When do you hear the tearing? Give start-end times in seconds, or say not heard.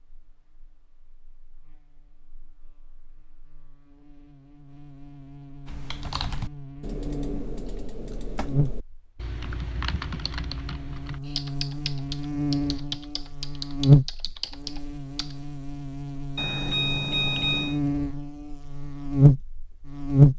not heard.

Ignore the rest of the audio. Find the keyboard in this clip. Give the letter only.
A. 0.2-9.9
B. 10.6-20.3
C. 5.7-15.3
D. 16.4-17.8
C.